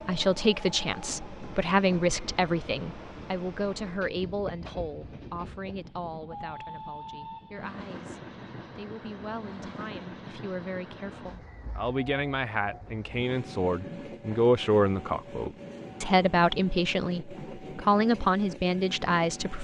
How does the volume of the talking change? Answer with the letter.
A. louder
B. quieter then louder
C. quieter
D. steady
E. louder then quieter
B.